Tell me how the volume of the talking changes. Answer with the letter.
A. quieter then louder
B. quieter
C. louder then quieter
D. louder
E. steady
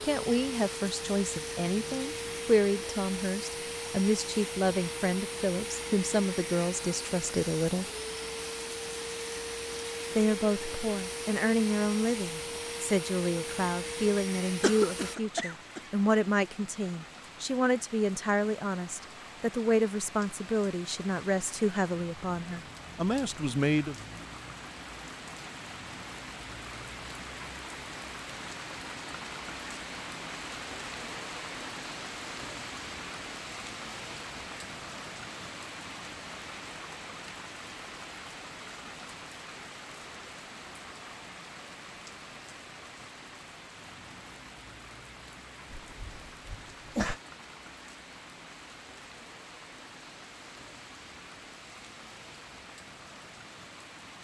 E.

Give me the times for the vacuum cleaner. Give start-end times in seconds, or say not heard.
0.0-15.2.